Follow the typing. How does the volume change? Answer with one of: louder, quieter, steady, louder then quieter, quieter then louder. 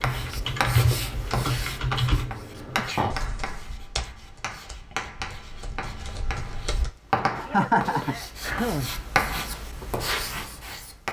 quieter then louder.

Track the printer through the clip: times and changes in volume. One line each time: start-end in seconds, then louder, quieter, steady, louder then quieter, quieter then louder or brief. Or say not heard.
not heard.